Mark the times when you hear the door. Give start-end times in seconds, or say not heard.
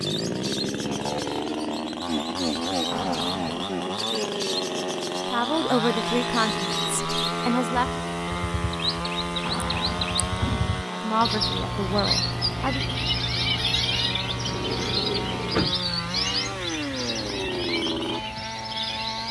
2.9-3.7, 9.4-10.7, 14.3-15.8.